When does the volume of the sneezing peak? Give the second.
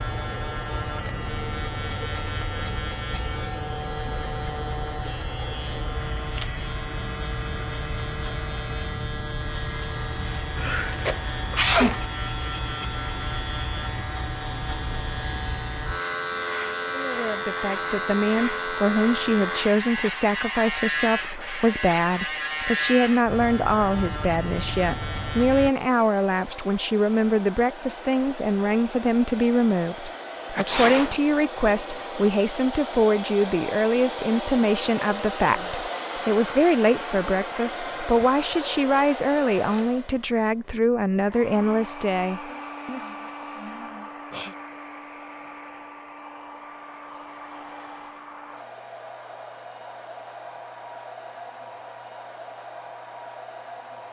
12 s.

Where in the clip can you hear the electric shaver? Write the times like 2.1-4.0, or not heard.
0.0-25.7.